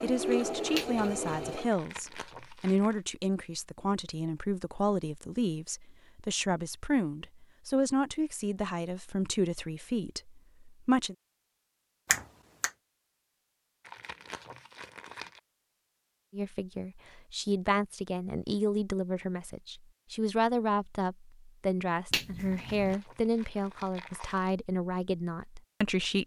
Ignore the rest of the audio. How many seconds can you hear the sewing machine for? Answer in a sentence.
The sewing machine can be heard for 2 seconds in total.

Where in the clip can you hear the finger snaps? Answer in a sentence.
You can hear the finger snaps from 0.7 to 1.4 s, from 12.1 to 12.7 s and from 22.1 to 22.9 s.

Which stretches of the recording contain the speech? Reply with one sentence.
The speech can be heard from 0.0 to 11.2 s and from 16.3 to 26.2 s.